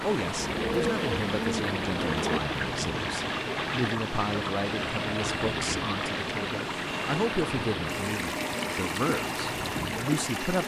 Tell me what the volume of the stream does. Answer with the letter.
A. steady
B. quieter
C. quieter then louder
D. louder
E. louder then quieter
A.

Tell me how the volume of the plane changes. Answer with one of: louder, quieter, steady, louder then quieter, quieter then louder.
steady.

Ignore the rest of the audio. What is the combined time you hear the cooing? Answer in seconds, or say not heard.
2 s.